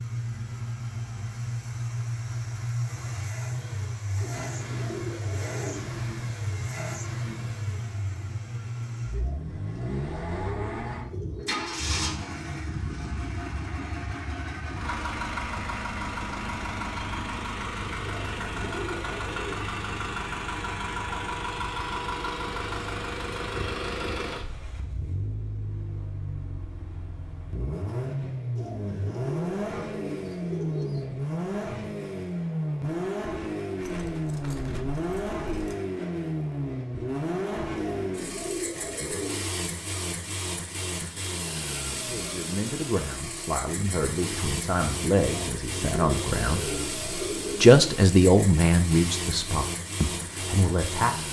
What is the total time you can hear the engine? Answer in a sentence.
The engine can be heard for 51 seconds in total.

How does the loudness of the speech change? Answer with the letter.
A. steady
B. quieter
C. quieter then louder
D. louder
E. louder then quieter
E.